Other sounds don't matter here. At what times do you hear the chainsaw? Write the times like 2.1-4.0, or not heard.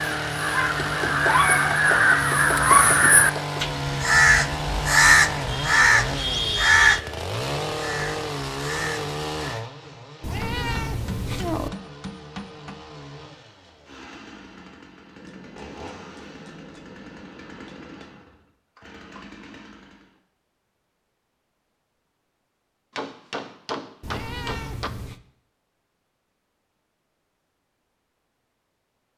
0.0-20.2.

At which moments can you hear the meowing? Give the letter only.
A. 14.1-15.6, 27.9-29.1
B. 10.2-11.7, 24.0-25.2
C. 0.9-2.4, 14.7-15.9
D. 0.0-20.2
B.